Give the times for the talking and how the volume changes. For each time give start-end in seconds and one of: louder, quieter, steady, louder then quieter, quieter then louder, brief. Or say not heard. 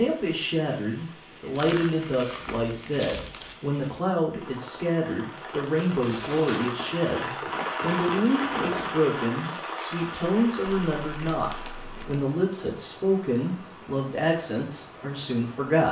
0.0-15.8 steady.